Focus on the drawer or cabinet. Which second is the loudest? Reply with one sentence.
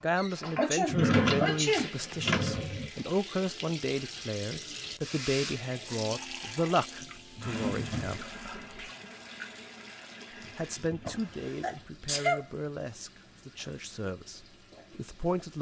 The volume of the drawer or cabinet peaks at 1 second.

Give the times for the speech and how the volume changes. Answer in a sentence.
You can hear the speech from 0.0 to 8.2 s, at a steady volume; and from 10.6 to 15.5 s, getting quieter.